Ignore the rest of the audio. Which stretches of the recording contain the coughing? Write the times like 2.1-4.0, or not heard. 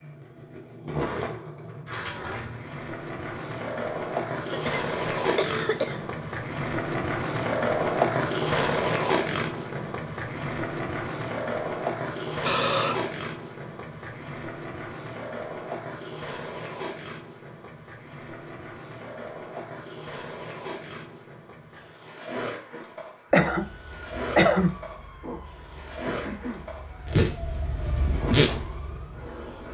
4.5-6.0, 12.4-13.1, 23.3-24.8.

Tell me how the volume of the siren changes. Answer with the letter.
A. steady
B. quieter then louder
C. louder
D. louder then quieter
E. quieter
C.